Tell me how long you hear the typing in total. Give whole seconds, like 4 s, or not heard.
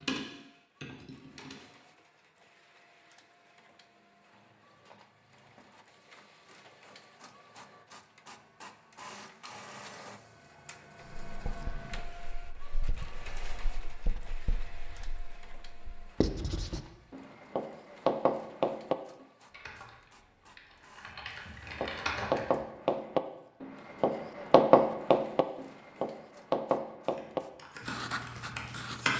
7 s.